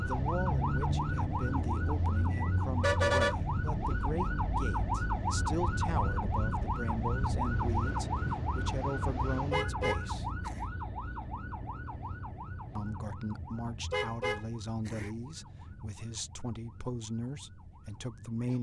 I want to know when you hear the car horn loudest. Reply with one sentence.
The loudest moment of the car horn is at 3 seconds.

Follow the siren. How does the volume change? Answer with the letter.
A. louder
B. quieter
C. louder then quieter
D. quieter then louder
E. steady
B.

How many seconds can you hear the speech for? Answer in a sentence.
The speech can be heard for 16 seconds in total.